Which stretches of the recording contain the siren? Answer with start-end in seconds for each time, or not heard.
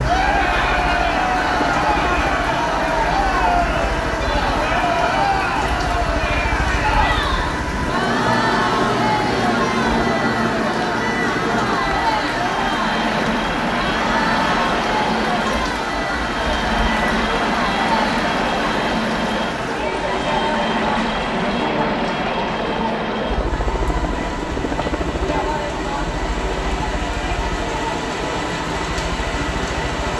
not heard.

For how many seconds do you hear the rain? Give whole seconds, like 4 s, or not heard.
30 s.